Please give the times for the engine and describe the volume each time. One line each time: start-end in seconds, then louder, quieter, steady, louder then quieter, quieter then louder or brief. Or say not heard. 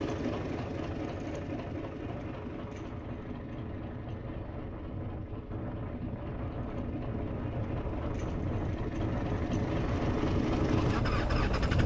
0.0-11.8 quieter then louder.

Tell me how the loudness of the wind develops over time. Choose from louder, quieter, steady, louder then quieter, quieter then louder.
louder.